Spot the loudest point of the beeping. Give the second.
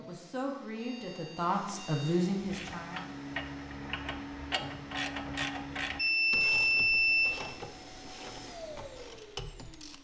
7 s.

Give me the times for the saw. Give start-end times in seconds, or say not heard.
not heard.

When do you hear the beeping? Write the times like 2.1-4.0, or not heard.
0.8-2.2, 6.0-7.3.